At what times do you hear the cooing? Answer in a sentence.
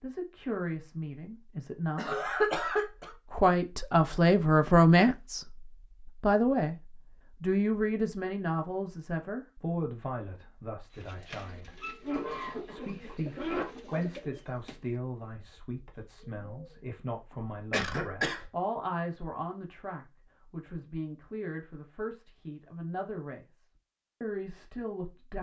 The cooing can be heard from 10.9 to 16.9 s.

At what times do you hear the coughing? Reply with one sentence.
The coughing can be heard from 1.9 to 3.1 s, from 12.0 to 13.7 s and from 17.7 to 18.4 s.